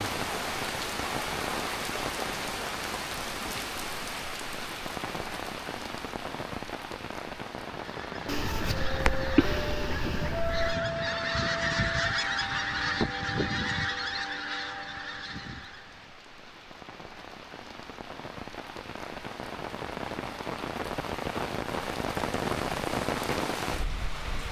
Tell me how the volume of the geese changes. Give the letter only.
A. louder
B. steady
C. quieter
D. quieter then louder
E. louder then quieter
E.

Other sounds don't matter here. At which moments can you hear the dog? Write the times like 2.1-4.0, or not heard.
8.2-10.8.